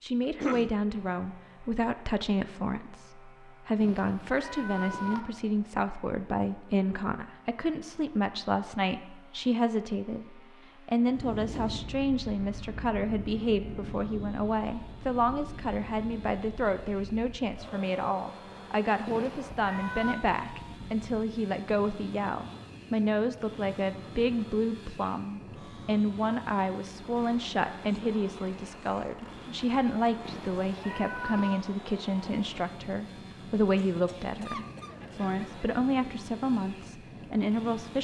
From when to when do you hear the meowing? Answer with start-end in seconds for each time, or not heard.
3.8-5.2, 19.1-20.2, 30.2-31.6.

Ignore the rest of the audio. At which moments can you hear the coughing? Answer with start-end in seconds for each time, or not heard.
0.2-0.8, 33.9-35.8.